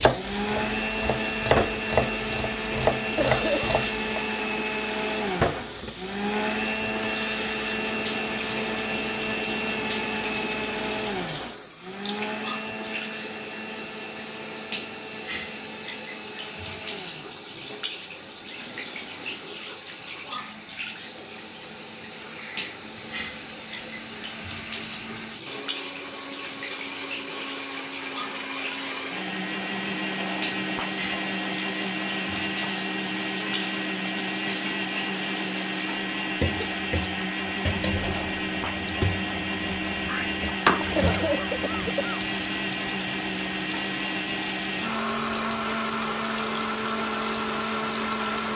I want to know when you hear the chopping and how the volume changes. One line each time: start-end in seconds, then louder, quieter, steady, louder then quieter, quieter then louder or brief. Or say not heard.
0.0-4.2 louder.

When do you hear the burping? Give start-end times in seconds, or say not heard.
40.0-40.9.